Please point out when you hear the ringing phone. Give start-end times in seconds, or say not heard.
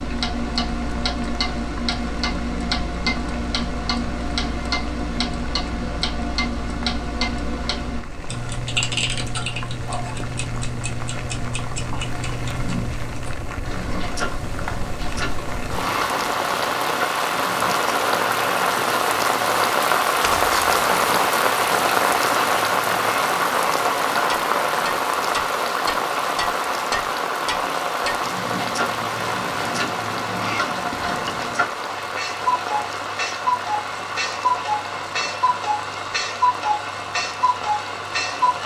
not heard.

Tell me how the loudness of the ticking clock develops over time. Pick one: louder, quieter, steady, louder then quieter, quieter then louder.
quieter then louder.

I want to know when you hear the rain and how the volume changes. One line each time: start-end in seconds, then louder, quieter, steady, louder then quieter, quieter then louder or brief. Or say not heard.
0.2-38.6 louder then quieter.